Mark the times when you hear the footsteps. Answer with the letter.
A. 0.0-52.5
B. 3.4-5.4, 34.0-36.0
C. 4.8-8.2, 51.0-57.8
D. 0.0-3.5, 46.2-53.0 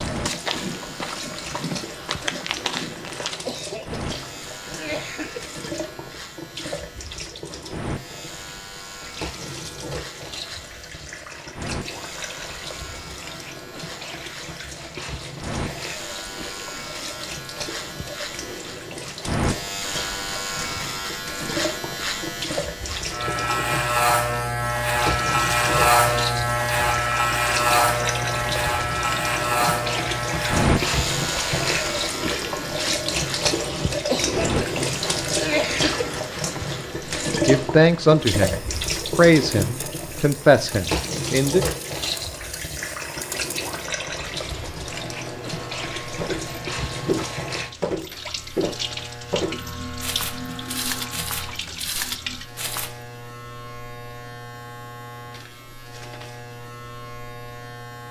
D.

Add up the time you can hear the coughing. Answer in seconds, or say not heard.
4 s.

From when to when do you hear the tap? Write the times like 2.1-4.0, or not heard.
0.0-52.5.